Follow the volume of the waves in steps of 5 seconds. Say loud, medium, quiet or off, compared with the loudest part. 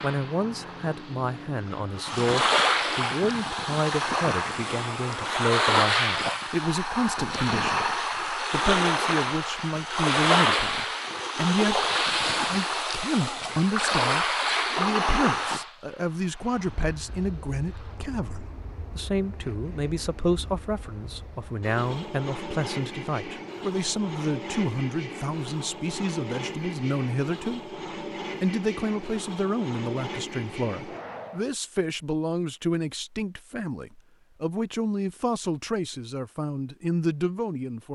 loud, loud, loud, medium, quiet, off, off, off.